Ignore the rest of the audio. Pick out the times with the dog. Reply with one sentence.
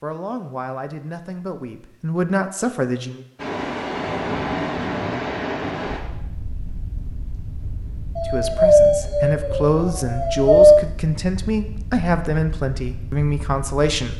You can hear the dog from 8.2 to 10.8 s.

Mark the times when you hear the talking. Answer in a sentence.
The talking can be heard from 0.0 to 3.2 s and from 8.2 to 14.1 s.